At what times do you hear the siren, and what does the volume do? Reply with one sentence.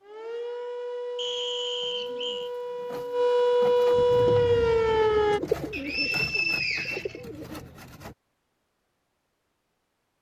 The siren can be heard from 0.0 to 5.4 s, getting louder.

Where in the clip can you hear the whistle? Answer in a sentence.
The whistle can be heard from 1.1 to 2.5 s and from 5.7 to 7.2 s.